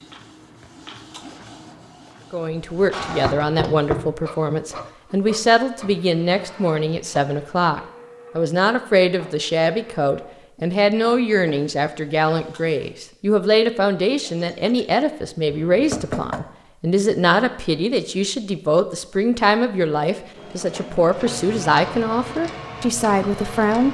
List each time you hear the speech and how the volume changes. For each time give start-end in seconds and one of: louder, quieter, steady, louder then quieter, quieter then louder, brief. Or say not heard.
2.3-23.8 steady.